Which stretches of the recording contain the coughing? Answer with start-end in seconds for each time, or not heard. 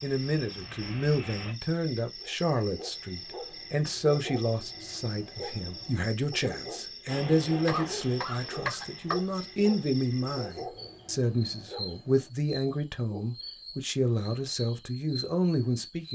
7.7-9.7.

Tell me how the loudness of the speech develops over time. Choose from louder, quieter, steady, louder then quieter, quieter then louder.
steady.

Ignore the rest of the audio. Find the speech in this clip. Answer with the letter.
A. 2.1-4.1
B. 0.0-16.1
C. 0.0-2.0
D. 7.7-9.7
B.